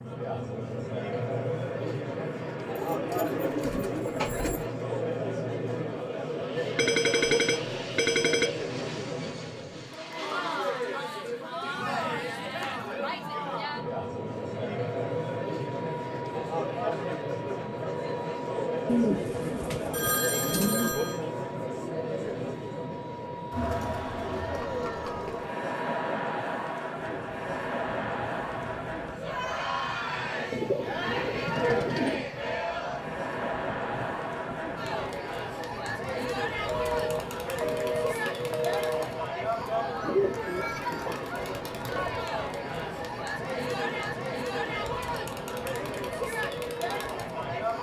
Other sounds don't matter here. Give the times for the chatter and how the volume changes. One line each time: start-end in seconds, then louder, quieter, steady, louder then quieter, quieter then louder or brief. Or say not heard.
0.0-47.7 steady.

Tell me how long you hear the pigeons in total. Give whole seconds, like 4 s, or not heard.
7 s.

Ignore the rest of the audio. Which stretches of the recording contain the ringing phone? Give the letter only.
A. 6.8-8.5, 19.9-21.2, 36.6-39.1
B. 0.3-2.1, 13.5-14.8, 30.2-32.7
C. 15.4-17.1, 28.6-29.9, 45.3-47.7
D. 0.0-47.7
A.